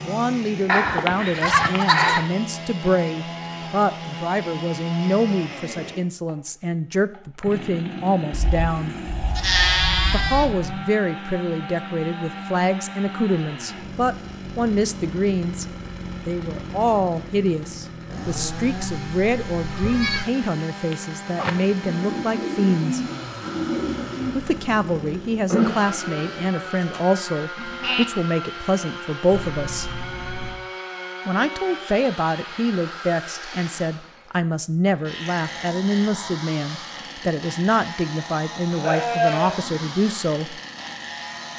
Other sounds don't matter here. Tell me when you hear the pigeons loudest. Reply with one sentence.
The volume of the pigeons peaks at 26 seconds.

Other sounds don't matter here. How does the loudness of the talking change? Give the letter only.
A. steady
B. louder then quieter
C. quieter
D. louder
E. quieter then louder
A.